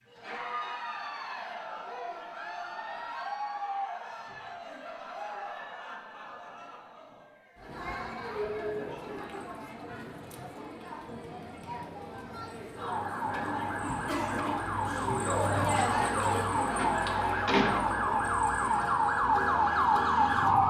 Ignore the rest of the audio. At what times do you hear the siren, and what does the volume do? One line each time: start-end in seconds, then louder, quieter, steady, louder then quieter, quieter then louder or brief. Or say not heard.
12.7-20.6 louder.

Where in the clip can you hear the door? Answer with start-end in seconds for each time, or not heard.
15.8-17.8.